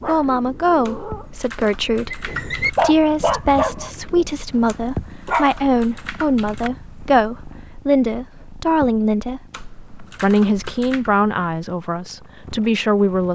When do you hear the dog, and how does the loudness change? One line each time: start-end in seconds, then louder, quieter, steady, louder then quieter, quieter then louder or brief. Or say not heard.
0.0-5.5 louder then quieter.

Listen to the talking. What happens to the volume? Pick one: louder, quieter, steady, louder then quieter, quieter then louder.
steady.